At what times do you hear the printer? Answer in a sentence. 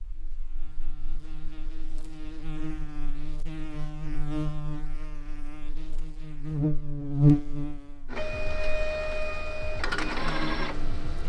The printer can be heard from 8.1 to 11.2 s.